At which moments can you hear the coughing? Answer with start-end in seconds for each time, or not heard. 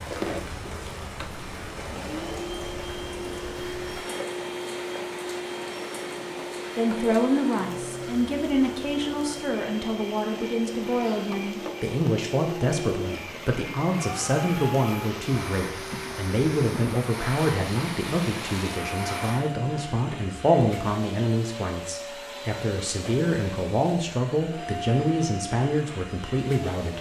not heard.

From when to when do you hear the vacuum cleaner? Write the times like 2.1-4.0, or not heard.
0.0-26.9.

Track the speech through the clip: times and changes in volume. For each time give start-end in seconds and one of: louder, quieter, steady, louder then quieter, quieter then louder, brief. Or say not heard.
6.8-26.9 steady.